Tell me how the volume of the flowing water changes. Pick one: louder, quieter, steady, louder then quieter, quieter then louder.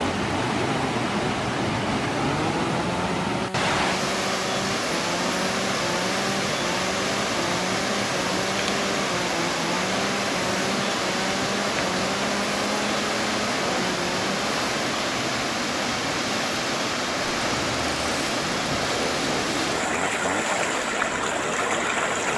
steady.